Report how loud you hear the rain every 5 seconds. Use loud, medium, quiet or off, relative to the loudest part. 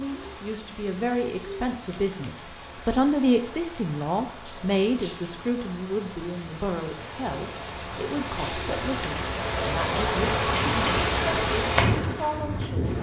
quiet, medium, loud.